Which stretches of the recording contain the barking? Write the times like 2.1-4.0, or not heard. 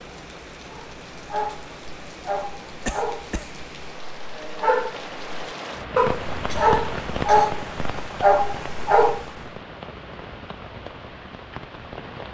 0.7-9.3.